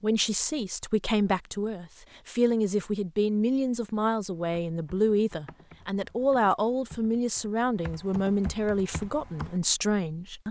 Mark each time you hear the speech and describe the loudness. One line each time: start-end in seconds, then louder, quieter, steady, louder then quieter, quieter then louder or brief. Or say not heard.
0.0-10.4 steady.